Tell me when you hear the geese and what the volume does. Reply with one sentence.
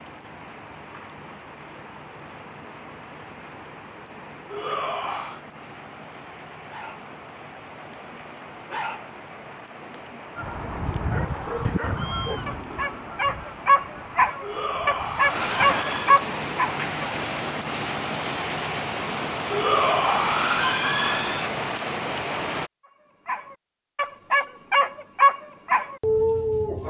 You can hear the geese from 10.3 to 15.8 s, getting quieter.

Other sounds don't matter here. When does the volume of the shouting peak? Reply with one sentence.
The volume of the shouting peaks at 20 seconds.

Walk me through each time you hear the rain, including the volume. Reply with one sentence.
You can hear the rain from 0.0 to 22.7 s, getting louder.